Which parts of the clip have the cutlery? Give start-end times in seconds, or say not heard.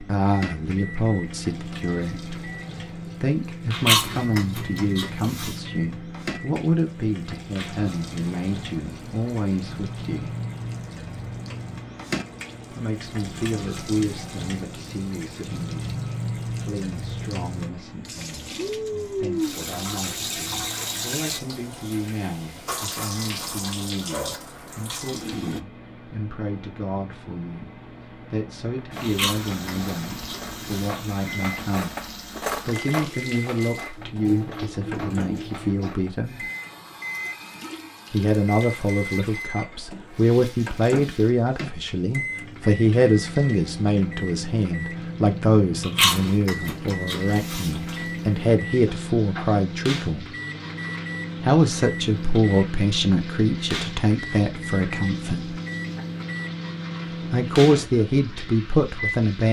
28.8-36.1.